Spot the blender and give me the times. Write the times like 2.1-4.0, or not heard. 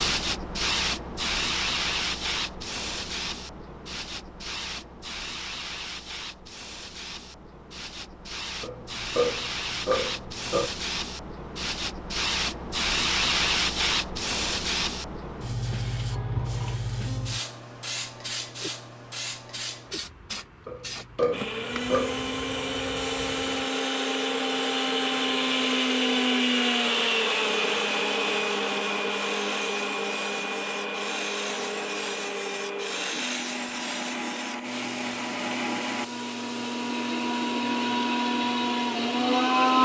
21.3-39.8.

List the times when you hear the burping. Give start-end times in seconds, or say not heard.
8.6-10.7, 20.6-22.4.